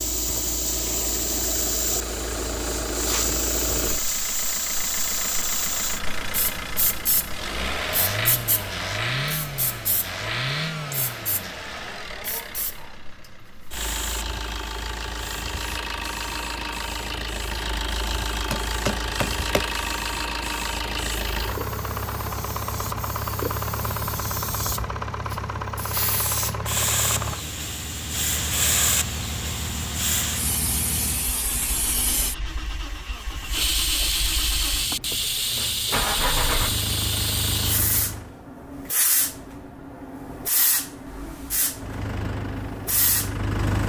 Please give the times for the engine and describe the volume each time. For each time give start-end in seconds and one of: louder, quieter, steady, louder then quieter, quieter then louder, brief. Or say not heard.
0.0-38.4 steady
41.8-43.8 brief.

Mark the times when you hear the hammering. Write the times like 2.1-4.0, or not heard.
18.3-19.6.